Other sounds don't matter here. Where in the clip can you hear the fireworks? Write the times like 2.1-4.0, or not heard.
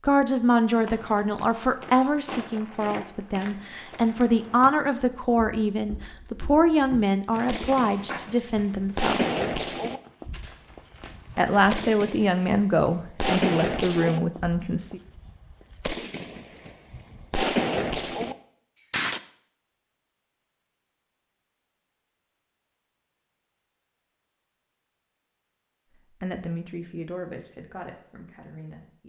7.5-19.2.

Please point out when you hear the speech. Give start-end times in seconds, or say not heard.
0.0-9.3, 11.3-15.0, 26.2-29.0.